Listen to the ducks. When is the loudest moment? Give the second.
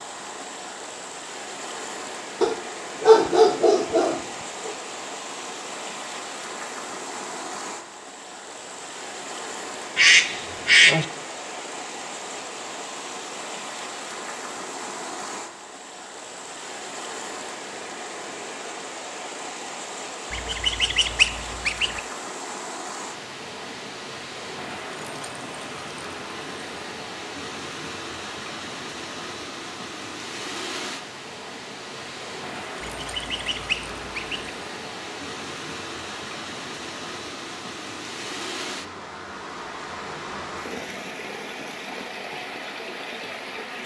11 s.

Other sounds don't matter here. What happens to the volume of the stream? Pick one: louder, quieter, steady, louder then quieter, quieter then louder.
steady.